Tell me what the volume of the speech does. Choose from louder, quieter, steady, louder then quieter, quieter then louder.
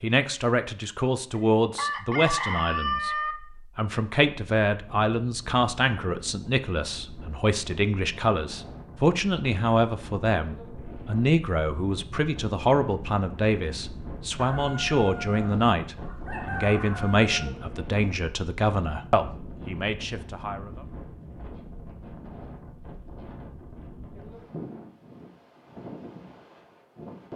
steady.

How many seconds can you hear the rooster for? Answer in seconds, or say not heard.
5 s.